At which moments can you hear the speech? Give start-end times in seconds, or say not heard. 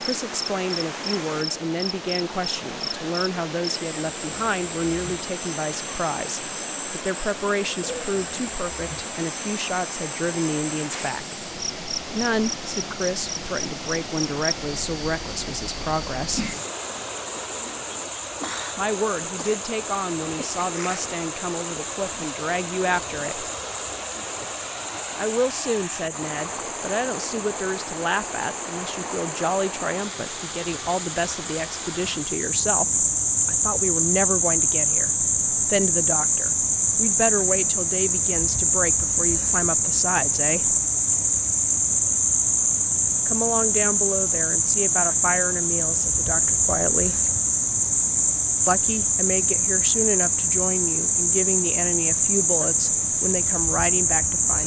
0.0-11.3, 12.1-16.5, 18.8-23.4, 25.1-40.8, 43.2-47.2, 48.6-54.6.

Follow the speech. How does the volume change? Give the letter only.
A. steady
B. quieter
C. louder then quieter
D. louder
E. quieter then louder
A.